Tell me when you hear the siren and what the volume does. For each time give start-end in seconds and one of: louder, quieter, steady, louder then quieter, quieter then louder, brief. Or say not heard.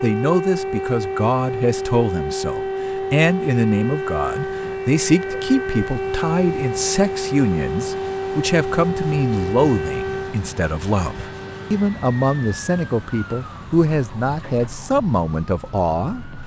0.0-16.4 quieter.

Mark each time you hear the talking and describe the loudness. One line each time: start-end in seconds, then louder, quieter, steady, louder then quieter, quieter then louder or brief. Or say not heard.
0.0-16.2 steady.